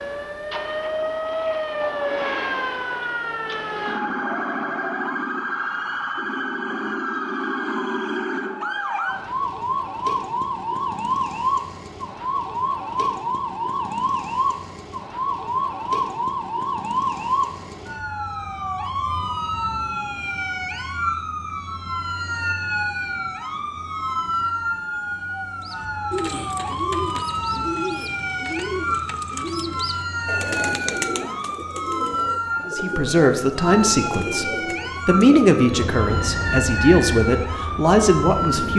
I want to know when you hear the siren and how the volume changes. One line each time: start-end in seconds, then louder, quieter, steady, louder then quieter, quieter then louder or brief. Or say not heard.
0.0-38.7 steady.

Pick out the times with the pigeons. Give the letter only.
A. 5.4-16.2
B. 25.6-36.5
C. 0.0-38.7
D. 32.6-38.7
B.